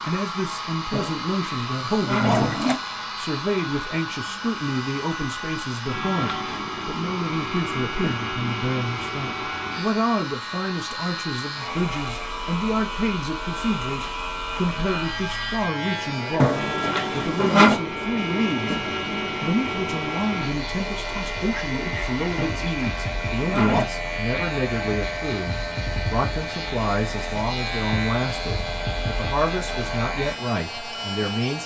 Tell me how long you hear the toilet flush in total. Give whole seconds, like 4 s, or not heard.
5 s.